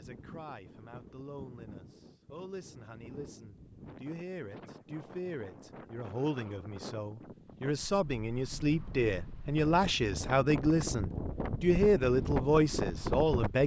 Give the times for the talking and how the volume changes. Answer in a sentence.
The talking can be heard from 0.0 to 13.6 s, getting louder.